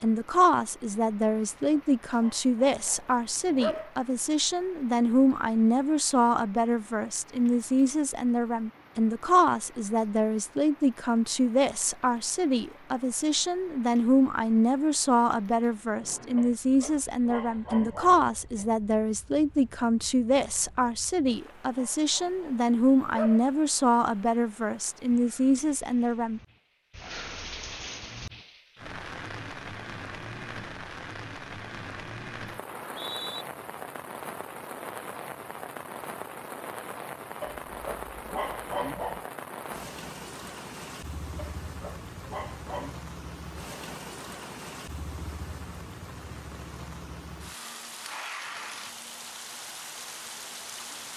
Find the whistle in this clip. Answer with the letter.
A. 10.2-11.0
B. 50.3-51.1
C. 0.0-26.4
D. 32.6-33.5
D.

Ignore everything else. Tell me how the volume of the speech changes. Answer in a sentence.
The loudness of the speech stays about the same.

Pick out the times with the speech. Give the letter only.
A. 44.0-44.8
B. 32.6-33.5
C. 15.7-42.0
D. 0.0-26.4
D.